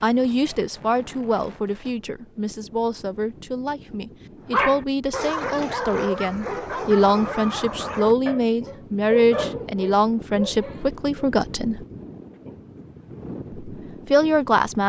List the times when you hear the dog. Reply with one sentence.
You can hear the dog from 4.5 to 11.2 s.